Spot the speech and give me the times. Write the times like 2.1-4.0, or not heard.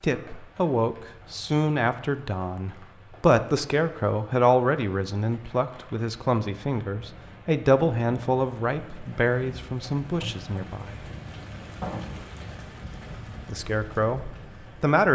0.0-11.1, 13.4-15.1.